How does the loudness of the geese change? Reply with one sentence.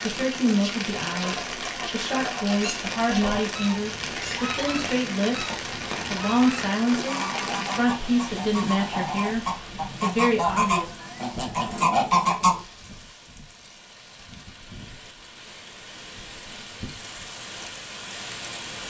The loudness of the geese goes up.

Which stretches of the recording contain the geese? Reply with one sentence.
You can hear the geese from 1.1 to 12.6 s.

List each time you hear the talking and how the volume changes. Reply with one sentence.
The talking can be heard from 0.0 to 11.1 s, at a steady volume.